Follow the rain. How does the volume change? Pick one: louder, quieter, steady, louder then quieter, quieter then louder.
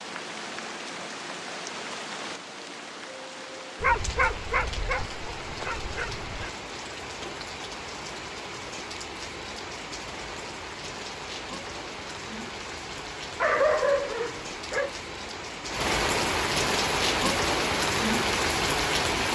louder.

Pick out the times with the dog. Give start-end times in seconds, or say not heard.
3.8-6.5, 13.4-14.9.